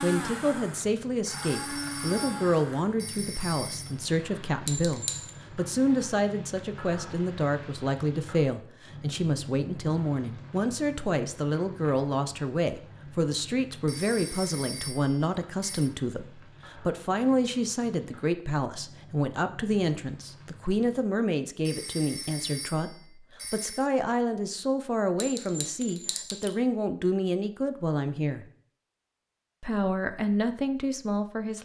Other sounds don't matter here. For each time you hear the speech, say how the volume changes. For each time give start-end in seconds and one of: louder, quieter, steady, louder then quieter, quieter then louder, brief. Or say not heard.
0.0-28.4 steady
29.6-31.5 brief.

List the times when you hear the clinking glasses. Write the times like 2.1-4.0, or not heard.
4.7-5.3, 25.2-26.6.